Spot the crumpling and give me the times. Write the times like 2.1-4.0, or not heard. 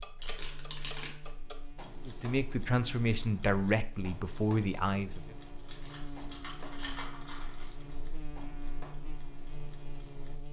0.2-1.2, 5.5-8.0.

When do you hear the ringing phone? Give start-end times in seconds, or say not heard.
not heard.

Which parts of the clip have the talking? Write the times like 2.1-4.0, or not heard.
2.0-5.3.